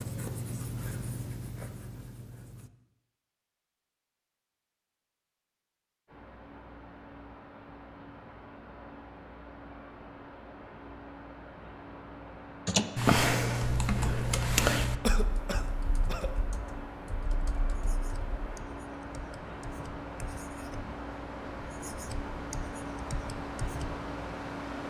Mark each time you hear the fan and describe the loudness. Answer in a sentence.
The fan can be heard from 6.0 to 24.8 s, getting louder.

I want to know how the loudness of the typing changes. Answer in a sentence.
The volume of the typing goes down.